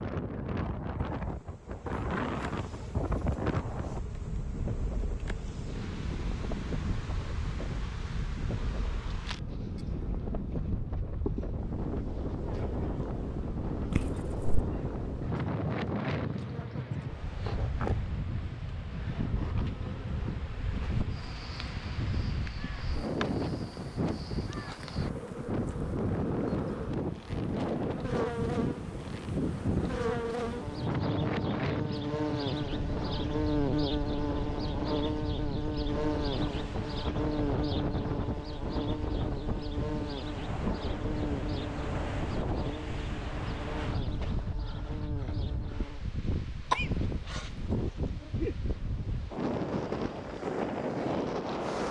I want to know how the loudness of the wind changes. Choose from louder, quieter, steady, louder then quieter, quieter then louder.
steady.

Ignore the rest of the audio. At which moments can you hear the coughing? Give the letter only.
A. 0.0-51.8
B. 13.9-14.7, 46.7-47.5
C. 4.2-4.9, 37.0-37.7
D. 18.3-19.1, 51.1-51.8
B.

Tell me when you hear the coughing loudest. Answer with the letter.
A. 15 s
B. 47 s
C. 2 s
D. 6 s
B.